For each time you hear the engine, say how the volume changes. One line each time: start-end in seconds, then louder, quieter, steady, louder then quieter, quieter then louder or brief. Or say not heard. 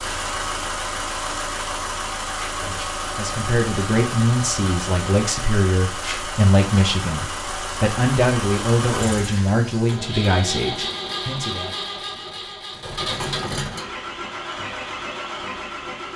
0.0-16.1 steady.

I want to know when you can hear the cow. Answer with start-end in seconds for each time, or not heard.
not heard.